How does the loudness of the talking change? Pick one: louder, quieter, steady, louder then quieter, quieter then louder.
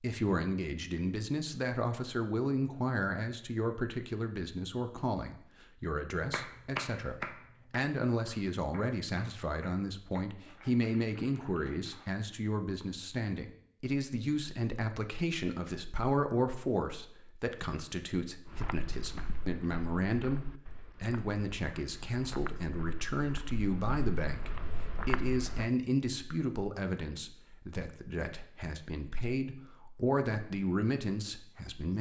steady.